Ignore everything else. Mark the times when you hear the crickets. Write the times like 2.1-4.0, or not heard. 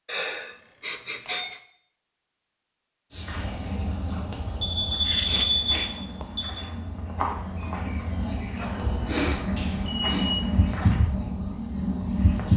3.1-12.5.